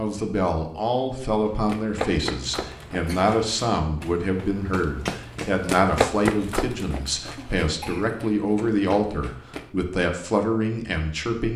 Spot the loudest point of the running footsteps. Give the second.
6 s.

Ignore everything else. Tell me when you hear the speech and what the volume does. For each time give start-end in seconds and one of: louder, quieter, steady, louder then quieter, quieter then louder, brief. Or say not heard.
0.0-11.5 steady.